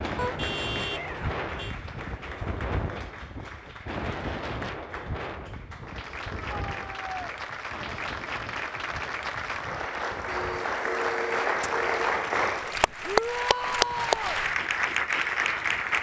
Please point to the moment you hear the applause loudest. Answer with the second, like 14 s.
14 s.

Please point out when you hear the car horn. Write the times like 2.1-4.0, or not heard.
0.1-1.8, 10.2-12.1.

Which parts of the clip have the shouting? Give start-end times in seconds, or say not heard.
0.8-1.3, 6.3-7.3, 13.1-14.4.